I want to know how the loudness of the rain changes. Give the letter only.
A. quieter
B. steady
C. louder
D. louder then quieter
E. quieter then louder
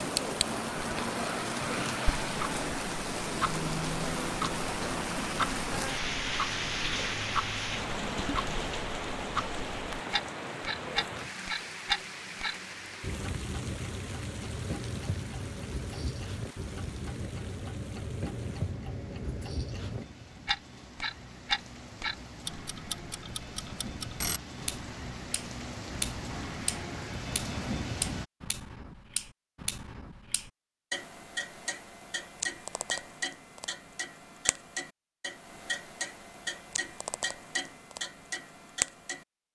E.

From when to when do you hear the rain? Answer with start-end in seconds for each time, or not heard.
0.0-28.2.